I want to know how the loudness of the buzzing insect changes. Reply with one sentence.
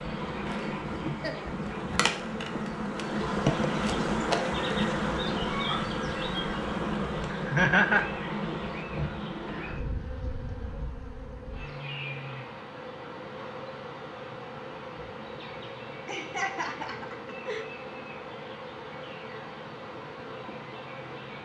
The volume of the buzzing insect goes down.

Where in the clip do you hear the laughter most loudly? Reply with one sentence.
The loudest moment of the laughter is at 8 seconds.